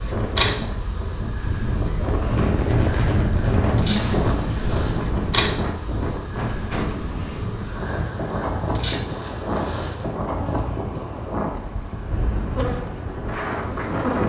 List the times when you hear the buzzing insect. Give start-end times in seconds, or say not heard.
0.0-14.2.